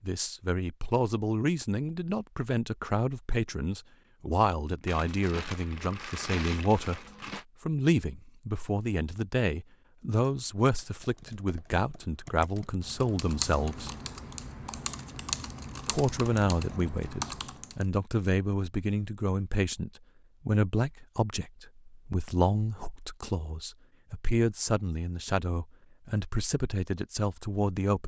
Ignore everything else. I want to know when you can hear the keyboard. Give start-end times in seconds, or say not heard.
10.0-17.9.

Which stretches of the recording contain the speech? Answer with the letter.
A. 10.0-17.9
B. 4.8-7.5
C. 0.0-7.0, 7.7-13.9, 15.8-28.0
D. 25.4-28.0
C.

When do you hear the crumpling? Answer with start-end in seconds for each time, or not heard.
4.8-7.5.